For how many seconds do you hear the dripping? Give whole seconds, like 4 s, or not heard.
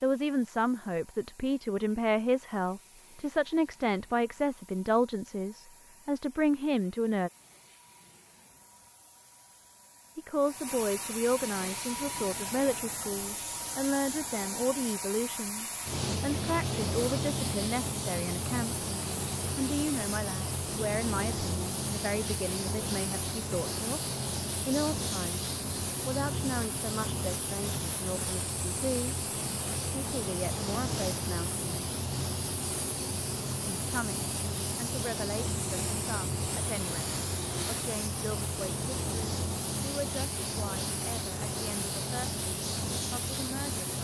not heard.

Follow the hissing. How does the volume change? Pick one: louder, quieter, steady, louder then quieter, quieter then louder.
louder.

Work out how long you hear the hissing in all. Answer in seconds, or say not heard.
44 s.